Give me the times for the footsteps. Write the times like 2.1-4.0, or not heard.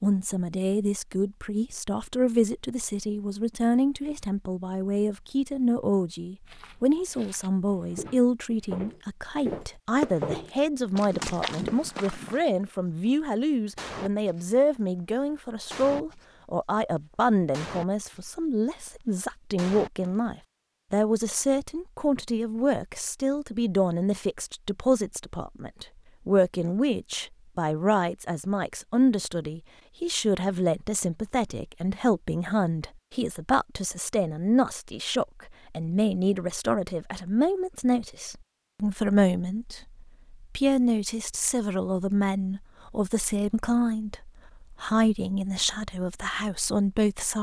6.5-12.4.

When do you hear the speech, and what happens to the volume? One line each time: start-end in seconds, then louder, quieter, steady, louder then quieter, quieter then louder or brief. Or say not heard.
0.0-47.3 steady.